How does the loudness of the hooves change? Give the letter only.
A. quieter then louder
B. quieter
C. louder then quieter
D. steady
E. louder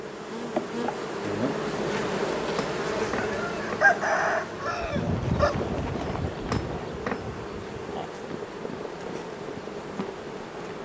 B.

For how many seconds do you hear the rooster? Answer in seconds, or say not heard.
3 s.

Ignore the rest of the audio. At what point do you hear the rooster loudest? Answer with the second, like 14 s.
4 s.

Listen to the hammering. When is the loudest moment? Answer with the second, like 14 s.
7 s.